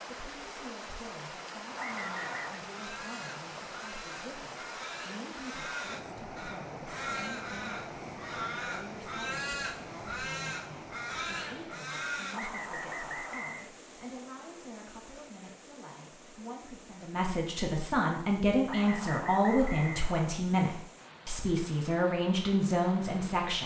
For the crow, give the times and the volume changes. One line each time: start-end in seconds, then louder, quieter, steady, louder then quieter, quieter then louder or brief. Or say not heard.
1.7-12.5 louder.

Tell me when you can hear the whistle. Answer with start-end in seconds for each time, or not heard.
1.8-2.6, 12.3-13.7, 18.6-20.3.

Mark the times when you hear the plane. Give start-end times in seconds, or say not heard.
not heard.